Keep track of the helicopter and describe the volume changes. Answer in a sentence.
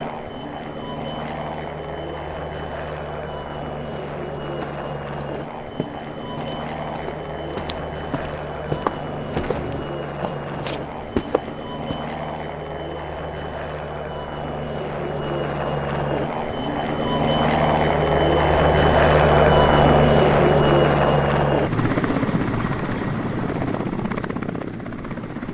The volume of the helicopter goes up.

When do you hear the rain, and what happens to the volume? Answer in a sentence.
The rain can't be heard in this clip.